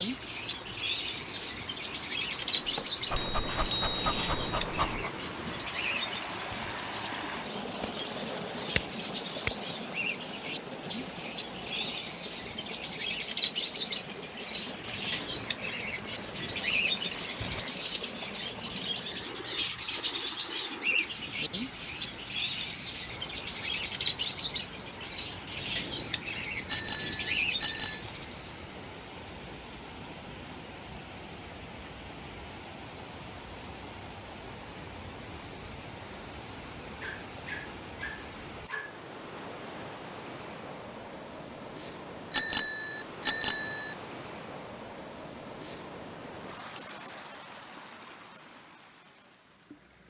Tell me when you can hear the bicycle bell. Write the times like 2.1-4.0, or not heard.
3.1-4.6, 26.6-28.0, 42.3-44.0.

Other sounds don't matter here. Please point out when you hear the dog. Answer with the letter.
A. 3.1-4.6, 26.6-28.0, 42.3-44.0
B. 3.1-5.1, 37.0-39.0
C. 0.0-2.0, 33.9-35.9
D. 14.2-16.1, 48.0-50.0
B.